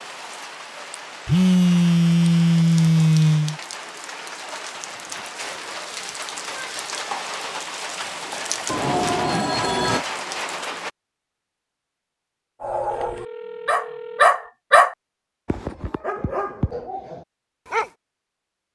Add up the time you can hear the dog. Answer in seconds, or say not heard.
5 s.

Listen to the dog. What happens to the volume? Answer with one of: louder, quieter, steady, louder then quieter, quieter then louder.
louder then quieter.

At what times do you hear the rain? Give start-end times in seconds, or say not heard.
0.0-10.9.